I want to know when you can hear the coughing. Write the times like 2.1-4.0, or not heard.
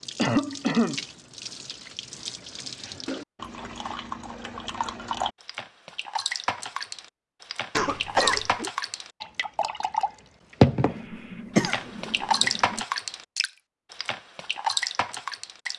0.1-1.0, 7.8-8.7, 10.8-12.8.